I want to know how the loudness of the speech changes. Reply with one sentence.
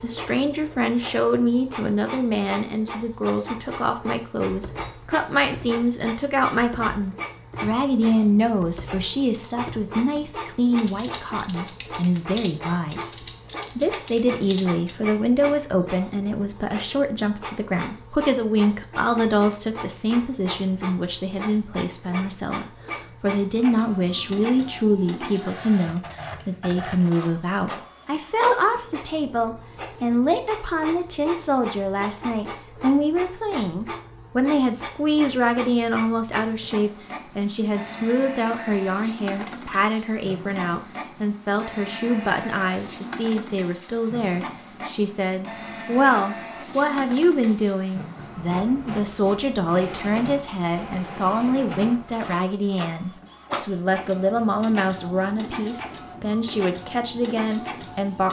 The volume of the speech stays about the same.